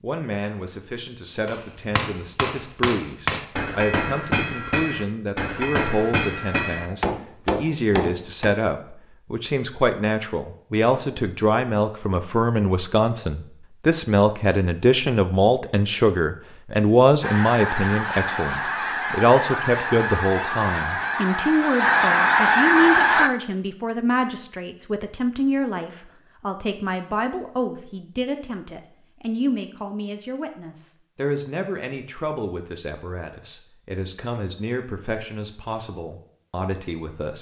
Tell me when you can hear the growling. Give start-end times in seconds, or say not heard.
not heard.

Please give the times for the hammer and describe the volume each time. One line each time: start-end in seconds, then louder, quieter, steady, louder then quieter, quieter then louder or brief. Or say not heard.
1.4-8.6 steady.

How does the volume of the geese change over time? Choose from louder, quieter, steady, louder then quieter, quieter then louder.
louder.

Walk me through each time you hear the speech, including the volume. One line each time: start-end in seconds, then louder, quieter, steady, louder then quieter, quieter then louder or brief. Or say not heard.
0.0-37.3 louder then quieter.